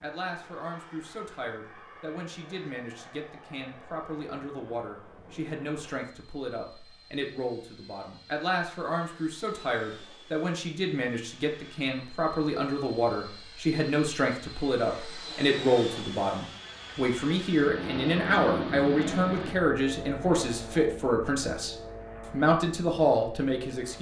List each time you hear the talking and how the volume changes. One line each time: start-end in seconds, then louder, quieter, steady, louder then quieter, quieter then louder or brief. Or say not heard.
0.0-23.9 louder.